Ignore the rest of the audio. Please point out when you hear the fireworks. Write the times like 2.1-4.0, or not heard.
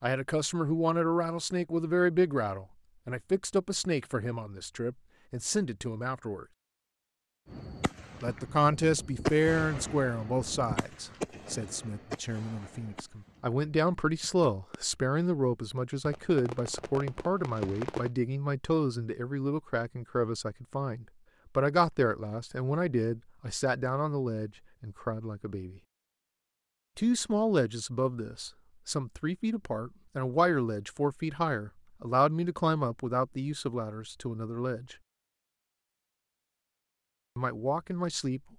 7.5-14.8, 16.1-18.1.